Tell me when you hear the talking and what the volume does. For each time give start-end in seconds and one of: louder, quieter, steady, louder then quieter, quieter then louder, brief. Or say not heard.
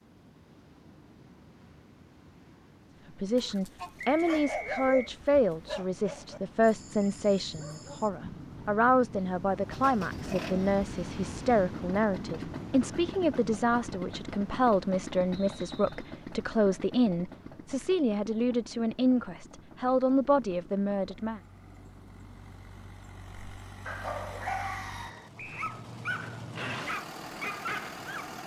3.2-21.4 steady.